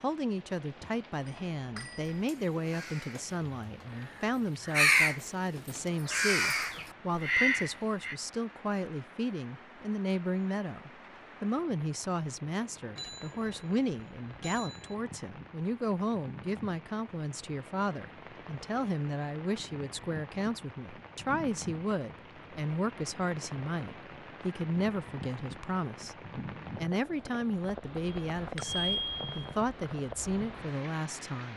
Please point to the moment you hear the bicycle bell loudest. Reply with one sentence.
The loudest moment of the bicycle bell is at 29 seconds.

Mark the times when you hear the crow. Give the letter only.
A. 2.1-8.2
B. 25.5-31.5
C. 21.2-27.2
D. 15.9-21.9
A.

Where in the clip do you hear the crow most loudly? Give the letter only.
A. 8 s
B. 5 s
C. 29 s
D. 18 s
B.